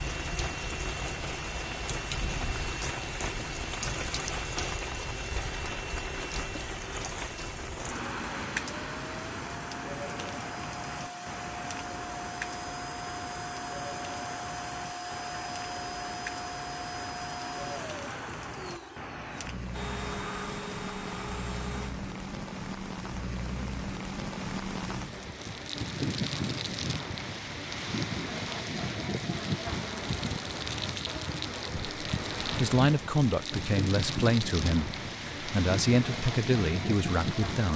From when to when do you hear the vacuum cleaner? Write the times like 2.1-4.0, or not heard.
0.0-21.9.